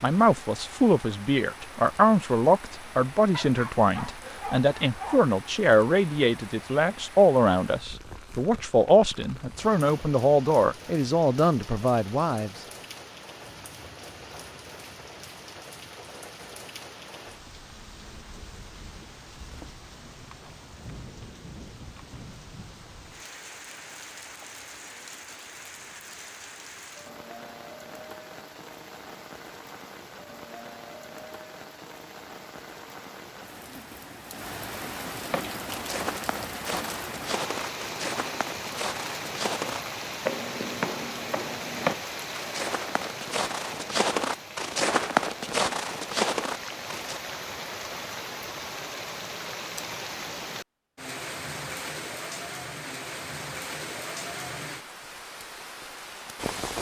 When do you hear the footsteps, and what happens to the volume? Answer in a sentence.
You can hear the footsteps from 35.3 to 47.2 s, getting louder.